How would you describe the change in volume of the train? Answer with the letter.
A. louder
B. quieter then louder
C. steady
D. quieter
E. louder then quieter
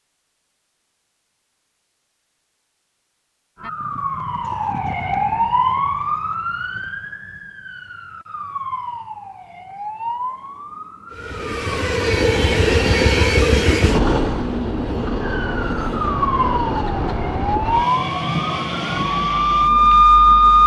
D.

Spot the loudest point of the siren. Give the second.
20 s.